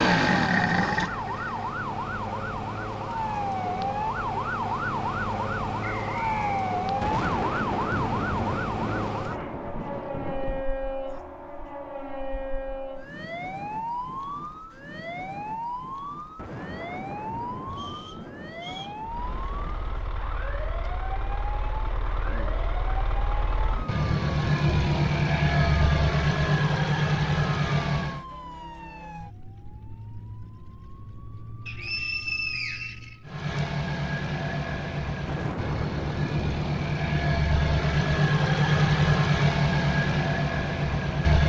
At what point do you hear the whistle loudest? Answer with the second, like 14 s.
32 s.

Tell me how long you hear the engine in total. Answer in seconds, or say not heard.
19 s.